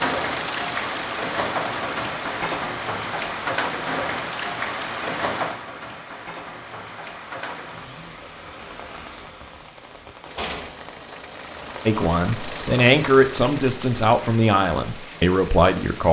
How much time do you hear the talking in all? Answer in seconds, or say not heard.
4 s.